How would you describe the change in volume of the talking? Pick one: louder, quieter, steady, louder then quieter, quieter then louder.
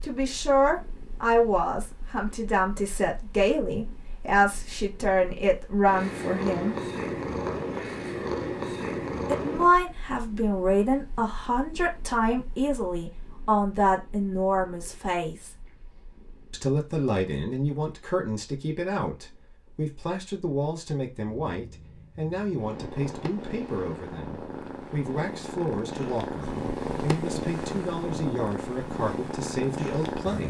quieter.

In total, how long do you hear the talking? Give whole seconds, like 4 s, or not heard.
27 s.